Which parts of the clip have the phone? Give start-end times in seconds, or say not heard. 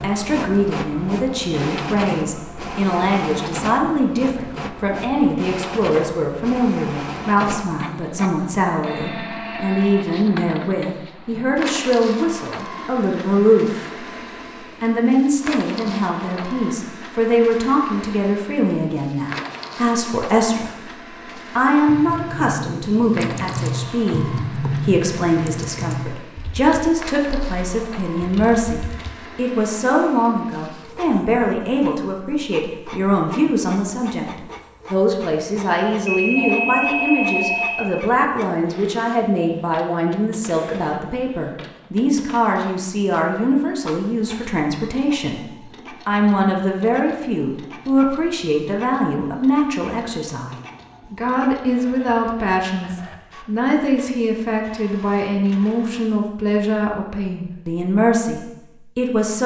36.0-37.9.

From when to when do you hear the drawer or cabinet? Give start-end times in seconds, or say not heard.
not heard.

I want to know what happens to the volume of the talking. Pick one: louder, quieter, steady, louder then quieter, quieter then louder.
steady.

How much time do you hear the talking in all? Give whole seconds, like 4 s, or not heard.
57 s.